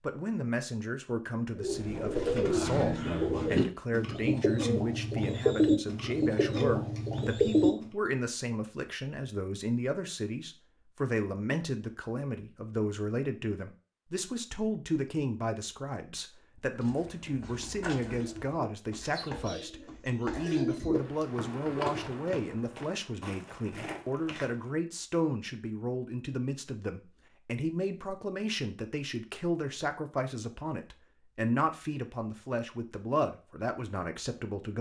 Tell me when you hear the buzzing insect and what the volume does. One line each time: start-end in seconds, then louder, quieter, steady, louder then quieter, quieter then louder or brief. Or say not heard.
not heard.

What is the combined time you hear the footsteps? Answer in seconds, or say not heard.
8 s.